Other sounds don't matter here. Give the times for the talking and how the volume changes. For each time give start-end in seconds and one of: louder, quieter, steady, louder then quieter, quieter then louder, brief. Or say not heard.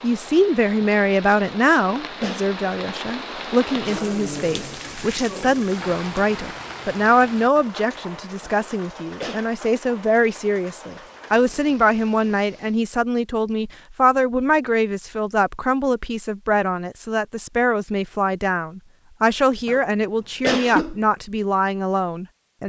0.0-22.6 steady.